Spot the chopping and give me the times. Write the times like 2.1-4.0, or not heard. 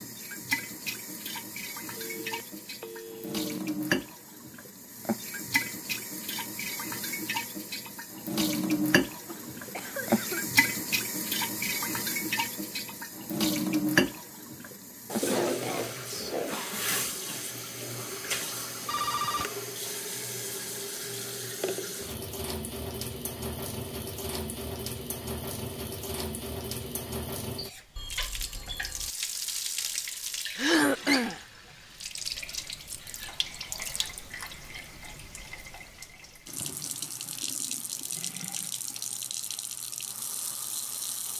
not heard.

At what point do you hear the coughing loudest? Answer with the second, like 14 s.
31 s.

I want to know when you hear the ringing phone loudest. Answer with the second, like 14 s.
19 s.